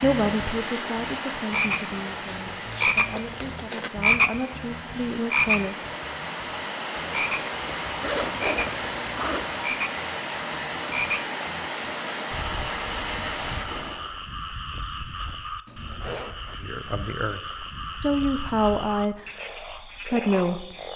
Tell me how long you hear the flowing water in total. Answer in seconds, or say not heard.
14 s.